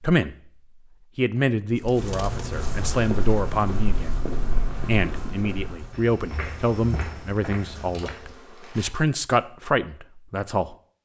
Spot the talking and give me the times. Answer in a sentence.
You can hear the talking from 0.0 to 0.5 s and from 1.1 to 10.8 s.